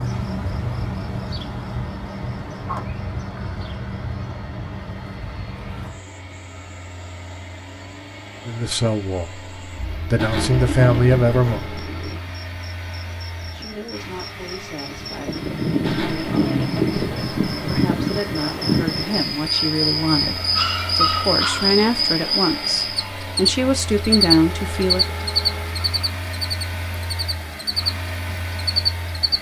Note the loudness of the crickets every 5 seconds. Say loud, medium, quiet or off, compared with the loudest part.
medium, quiet, quiet, loud, loud, loud.